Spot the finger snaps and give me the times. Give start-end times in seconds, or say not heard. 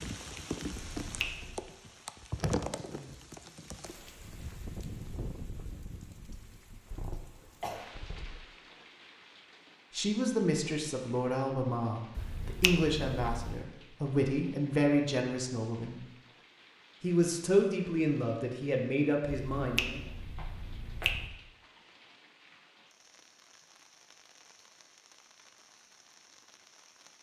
0.7-1.6, 12.2-13.6, 19.6-21.3.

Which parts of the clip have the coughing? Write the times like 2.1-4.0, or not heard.
6.9-8.4.